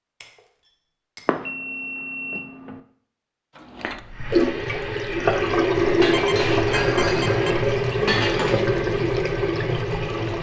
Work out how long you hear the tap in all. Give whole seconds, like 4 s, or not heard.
7 s.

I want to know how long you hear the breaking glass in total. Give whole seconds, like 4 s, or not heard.
4 s.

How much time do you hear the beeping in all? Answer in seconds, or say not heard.
3 s.